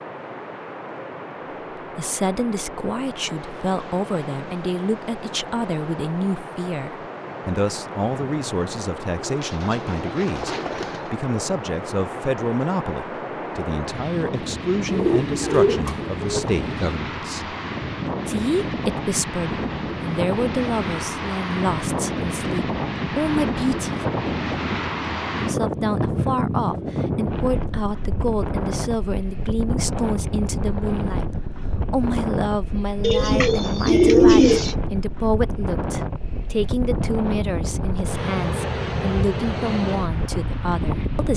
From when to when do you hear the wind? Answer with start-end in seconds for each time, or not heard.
0.0-41.3.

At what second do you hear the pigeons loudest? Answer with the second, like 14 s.
34 s.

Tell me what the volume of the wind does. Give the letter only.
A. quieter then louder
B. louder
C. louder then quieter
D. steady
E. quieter
B.